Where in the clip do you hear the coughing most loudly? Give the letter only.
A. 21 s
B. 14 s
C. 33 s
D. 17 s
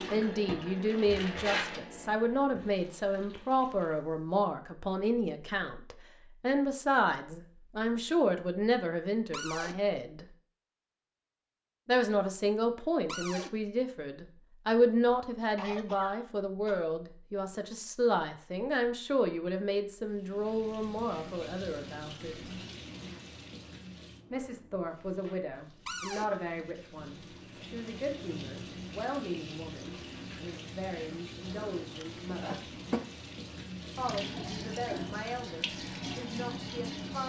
C.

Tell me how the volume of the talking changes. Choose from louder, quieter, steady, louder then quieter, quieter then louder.
quieter.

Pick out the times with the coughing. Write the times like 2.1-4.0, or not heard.
15.5-16.9, 31.4-33.0.